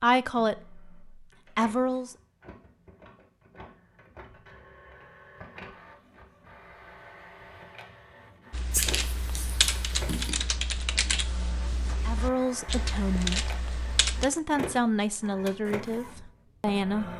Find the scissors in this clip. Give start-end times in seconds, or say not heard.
8.7-10.3.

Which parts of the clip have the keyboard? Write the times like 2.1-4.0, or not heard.
8.5-14.2.